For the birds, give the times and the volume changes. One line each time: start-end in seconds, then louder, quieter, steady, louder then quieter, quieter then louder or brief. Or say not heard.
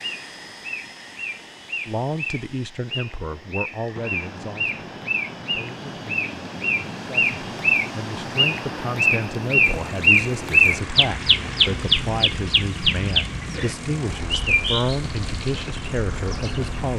0.0-16.9 louder then quieter.